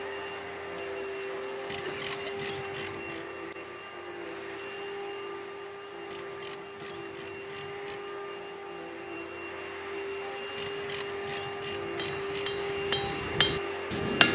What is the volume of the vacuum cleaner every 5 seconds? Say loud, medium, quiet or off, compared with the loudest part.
loud, medium, loud.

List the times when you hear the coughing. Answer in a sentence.
You can hear the coughing from 1.8 to 2.5 s.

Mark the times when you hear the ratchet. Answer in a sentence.
The ratchet can be heard from 1.7 to 3.2 s, from 6.1 to 8.0 s and from 10.6 to 12.6 s.